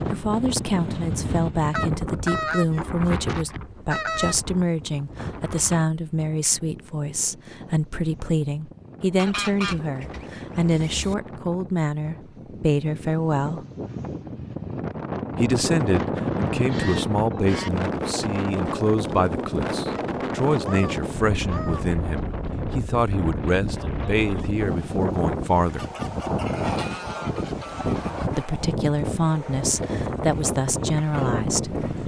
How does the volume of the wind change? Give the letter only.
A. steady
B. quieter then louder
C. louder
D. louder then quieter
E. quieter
B.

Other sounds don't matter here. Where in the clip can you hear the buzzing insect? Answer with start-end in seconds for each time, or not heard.
not heard.